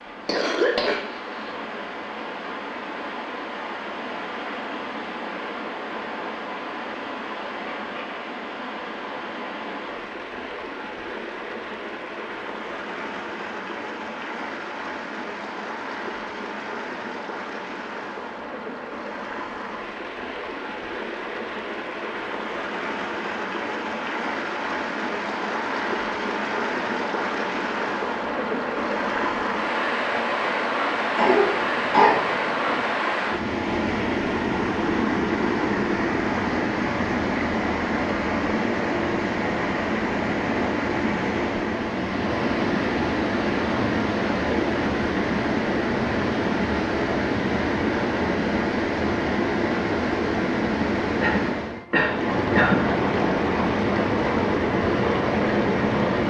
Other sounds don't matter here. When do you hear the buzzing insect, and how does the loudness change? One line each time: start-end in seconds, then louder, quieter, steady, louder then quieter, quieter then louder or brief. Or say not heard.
not heard.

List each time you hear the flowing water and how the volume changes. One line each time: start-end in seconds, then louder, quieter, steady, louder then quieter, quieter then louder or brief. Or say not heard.
0.0-56.2 louder.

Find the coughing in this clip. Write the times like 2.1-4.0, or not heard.
0.2-1.5, 31.1-32.8, 51.2-52.9.